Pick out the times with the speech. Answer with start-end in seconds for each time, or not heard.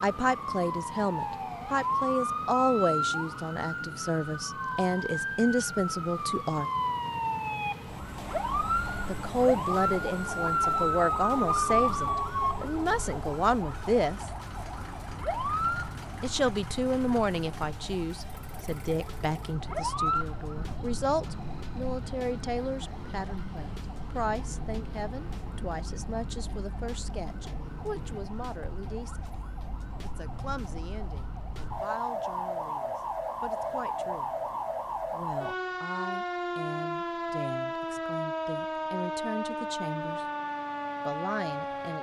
0.0-6.7, 9.1-14.3, 16.2-29.3, 30.0-34.4, 35.1-40.2, 41.0-41.9.